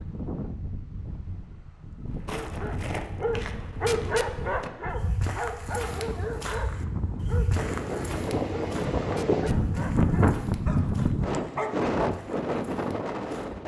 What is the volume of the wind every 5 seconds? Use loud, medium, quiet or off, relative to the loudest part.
quiet, loud, loud.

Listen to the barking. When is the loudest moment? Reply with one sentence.
The loudest moment of the barking is at 4 seconds.